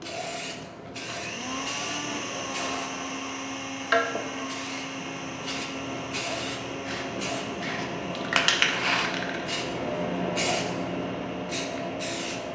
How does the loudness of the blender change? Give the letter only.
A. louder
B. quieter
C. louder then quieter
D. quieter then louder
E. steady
B.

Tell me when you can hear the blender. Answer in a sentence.
You can hear the blender from 0.0 to 12.5 s.